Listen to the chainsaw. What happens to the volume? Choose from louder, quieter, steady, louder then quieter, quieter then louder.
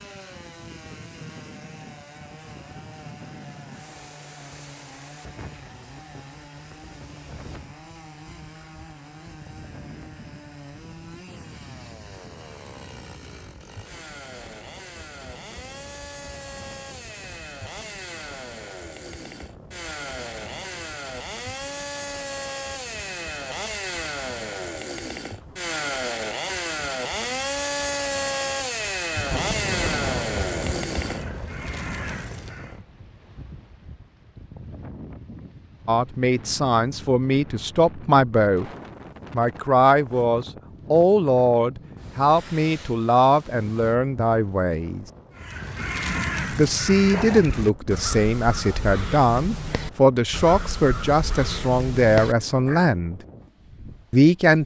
louder.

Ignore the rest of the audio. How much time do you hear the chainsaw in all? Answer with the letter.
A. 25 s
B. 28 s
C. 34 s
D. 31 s
D.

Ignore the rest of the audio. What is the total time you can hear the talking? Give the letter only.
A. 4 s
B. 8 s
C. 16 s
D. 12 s
C.